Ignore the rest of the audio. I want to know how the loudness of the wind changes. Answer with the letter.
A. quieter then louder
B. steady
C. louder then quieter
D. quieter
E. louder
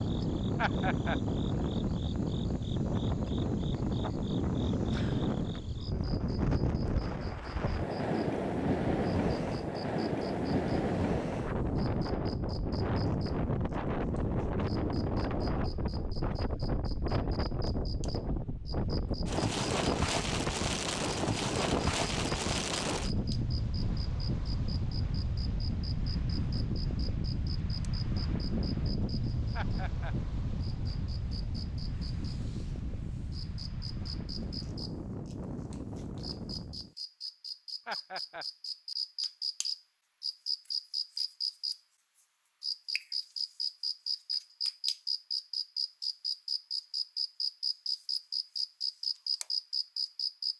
D.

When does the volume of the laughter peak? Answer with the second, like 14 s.
1 s.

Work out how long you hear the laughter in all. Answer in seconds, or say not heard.
2 s.